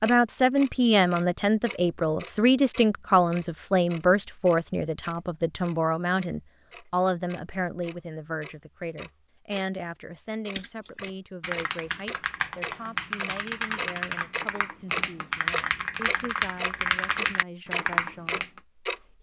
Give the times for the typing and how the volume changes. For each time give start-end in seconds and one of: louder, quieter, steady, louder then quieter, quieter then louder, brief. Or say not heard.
10.6-18.6 louder.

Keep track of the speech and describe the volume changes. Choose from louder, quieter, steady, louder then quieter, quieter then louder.
quieter.